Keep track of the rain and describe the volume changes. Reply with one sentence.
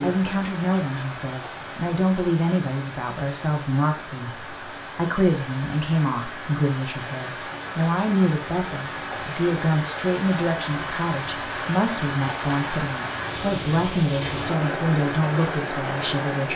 The volume of the rain goes up.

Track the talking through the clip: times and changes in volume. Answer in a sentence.
The talking can be heard from 0.0 to 16.5 s, at a steady volume.